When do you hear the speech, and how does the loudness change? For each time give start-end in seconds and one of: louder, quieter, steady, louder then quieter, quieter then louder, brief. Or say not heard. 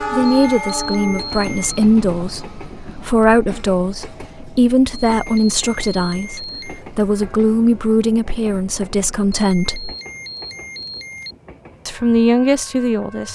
0.0-9.9 steady
11.8-13.3 brief.